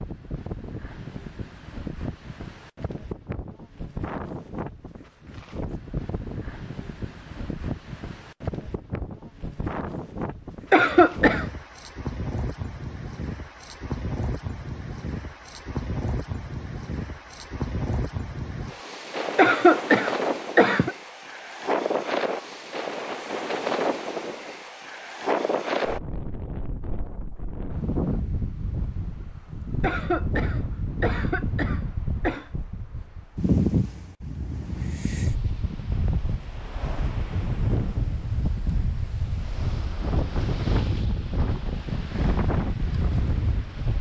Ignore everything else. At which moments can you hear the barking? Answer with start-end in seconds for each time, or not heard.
not heard.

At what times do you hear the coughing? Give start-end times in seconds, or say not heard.
10.7-11.5, 19.4-20.9, 29.8-32.5.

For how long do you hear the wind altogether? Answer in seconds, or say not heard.
44 s.